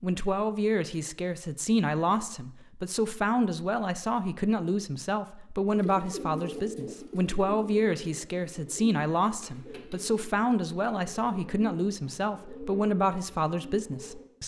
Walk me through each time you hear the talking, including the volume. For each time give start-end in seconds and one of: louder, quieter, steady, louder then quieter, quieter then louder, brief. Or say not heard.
0.0-14.4 steady.